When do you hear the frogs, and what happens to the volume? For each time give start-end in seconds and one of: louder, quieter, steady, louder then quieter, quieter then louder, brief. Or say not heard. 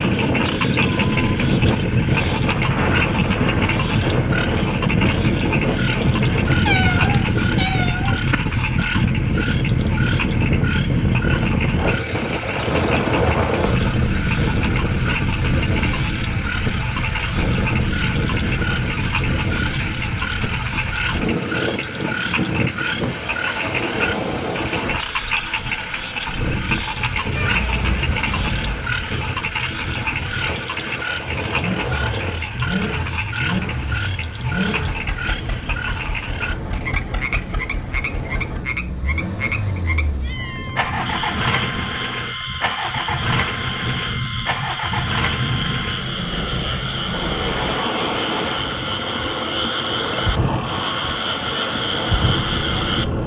0.0-53.2 steady.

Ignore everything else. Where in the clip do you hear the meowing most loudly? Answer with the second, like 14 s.
7 s.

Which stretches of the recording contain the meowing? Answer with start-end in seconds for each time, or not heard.
6.5-8.3, 27.4-28.9, 40.1-40.8.